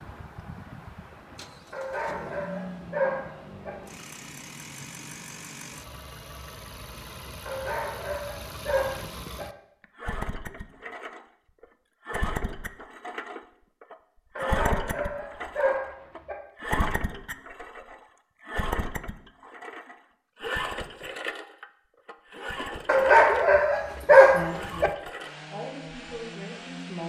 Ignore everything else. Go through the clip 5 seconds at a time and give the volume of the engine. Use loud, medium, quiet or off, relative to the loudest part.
medium, medium, loud, loud, loud, medium.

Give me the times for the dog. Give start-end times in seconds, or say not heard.
1.7-3.7, 7.5-9.4, 14.3-16.4, 22.9-24.9.